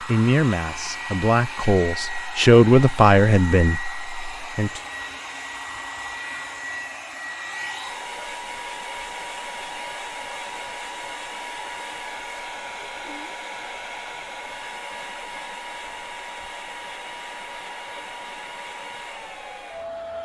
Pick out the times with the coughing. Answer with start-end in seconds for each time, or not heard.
not heard.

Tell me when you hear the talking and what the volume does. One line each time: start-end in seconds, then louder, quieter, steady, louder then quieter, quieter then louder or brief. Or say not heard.
0.0-4.8 louder then quieter.